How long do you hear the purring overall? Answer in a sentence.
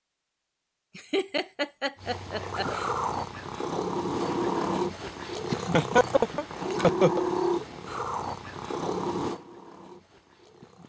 The purring can be heard for 9 seconds in total.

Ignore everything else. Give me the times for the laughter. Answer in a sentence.
You can hear the laughter from 0.9 to 2.6 s and from 5.5 to 7.2 s.